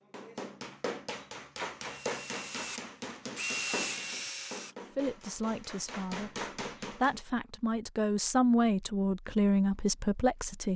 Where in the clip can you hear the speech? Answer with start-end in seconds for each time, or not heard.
5.0-10.7.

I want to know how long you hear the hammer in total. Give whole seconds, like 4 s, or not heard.
7 s.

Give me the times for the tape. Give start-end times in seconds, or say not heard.
not heard.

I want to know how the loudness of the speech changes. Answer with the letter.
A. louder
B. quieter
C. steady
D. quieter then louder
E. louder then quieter
A.